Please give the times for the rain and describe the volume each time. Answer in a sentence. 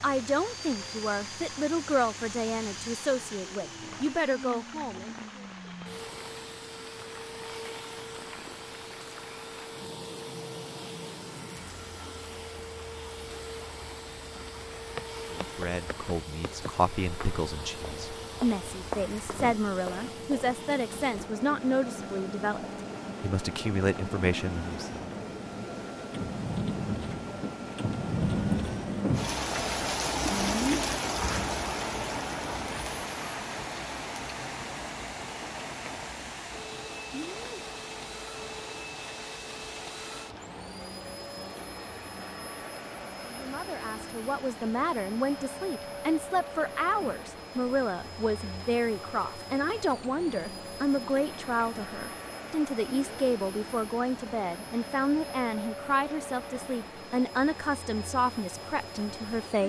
You can hear the rain from 0.0 to 59.6 s, getting louder then quieter.